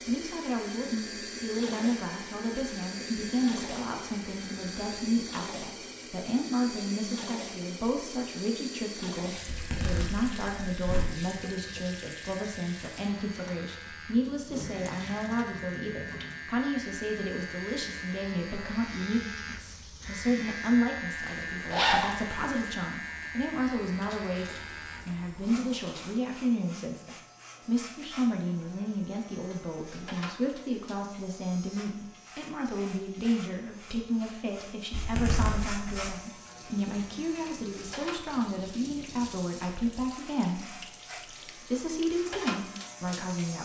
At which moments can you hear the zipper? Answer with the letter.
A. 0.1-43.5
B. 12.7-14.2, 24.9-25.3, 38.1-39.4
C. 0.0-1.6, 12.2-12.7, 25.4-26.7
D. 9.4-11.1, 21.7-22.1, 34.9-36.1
D.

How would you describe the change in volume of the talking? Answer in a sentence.
The volume of the talking stays about the same.